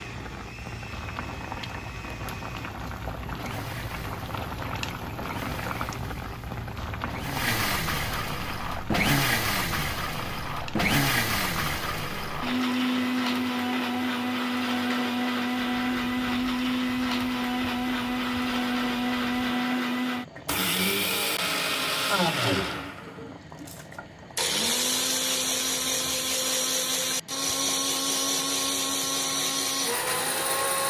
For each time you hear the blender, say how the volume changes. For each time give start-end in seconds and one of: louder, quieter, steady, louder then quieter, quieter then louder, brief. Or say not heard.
0.0-30.8 louder.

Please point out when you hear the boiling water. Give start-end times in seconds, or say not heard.
0.0-30.8.